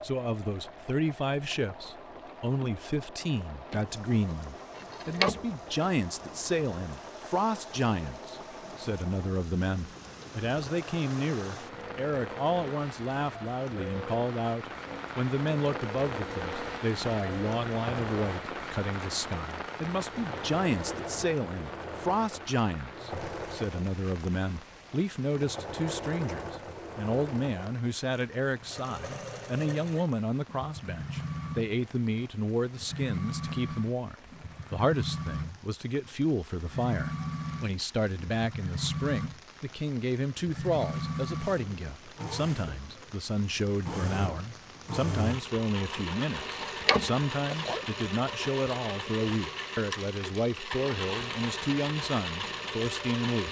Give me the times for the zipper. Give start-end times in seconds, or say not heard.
4.8-5.9, 46.5-47.9.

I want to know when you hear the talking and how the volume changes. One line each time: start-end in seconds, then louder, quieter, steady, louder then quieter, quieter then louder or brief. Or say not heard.
0.0-53.4 steady.